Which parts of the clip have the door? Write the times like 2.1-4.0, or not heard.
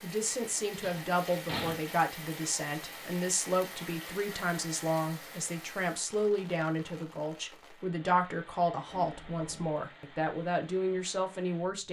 0.8-1.8, 8.8-9.8.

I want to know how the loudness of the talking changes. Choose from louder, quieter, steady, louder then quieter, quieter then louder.
steady.